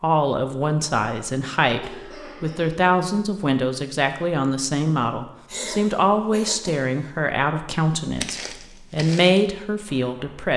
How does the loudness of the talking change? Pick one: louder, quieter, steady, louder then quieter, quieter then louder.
steady.